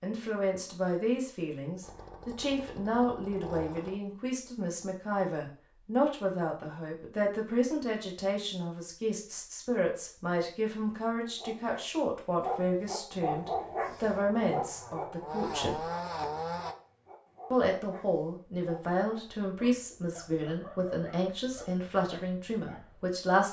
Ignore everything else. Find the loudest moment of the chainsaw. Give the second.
16 s.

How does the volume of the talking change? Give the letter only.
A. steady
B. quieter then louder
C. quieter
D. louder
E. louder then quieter
A.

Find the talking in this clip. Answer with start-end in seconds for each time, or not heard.
0.0-15.8, 17.5-23.4.